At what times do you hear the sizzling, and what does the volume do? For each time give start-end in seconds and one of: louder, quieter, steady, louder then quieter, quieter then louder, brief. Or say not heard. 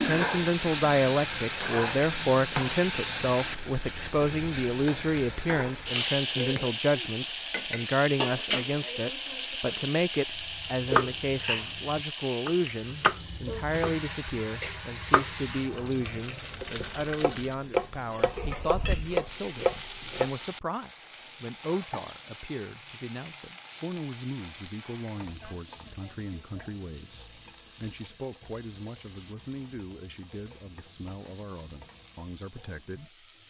0.0-33.4 quieter.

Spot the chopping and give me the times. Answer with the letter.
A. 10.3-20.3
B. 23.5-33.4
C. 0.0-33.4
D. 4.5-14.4
A.